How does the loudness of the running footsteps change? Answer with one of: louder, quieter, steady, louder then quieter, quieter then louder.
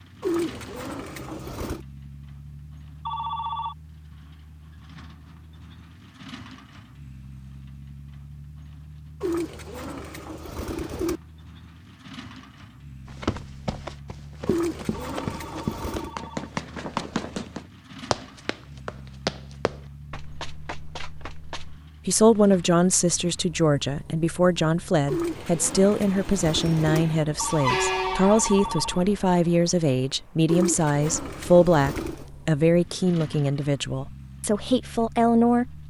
louder then quieter.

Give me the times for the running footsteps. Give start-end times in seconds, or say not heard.
13.1-21.8.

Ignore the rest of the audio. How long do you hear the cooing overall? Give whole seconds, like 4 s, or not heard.
9 s.